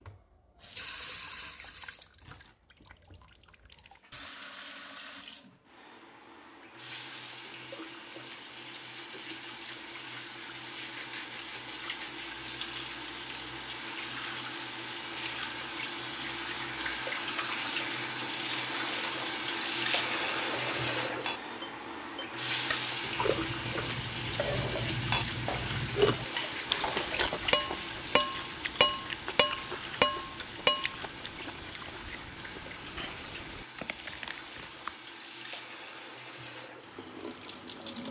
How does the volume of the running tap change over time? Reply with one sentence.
The volume of the running tap goes up, then down.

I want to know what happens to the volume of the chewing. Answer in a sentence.
The loudness of the chewing goes up, then down.